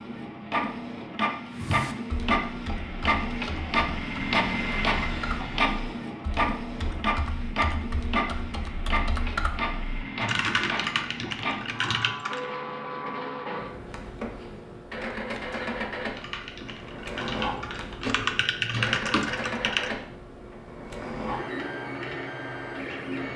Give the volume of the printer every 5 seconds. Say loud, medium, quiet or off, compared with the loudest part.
loud, loud, medium, medium, medium.